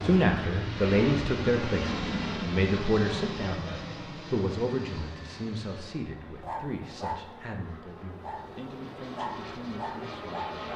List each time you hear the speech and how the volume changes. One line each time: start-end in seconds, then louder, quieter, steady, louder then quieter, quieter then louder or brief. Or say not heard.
0.0-10.7 quieter.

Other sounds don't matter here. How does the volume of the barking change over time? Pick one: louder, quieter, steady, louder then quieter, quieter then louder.
quieter then louder.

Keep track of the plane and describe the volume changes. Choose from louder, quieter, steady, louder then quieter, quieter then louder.
quieter then louder.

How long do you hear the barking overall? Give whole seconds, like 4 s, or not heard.
4 s.